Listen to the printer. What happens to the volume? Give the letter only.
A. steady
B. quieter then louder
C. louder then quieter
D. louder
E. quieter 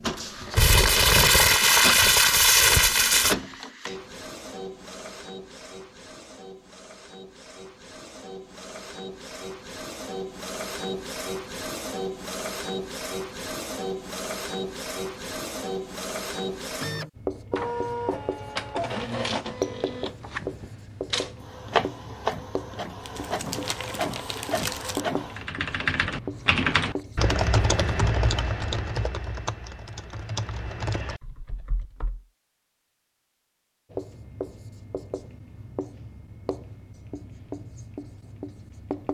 B.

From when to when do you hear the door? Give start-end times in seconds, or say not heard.
not heard.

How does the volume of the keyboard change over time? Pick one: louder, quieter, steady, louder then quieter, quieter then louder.
quieter.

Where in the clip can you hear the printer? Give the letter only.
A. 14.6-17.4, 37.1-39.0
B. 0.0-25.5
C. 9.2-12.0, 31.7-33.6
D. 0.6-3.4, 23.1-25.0
B.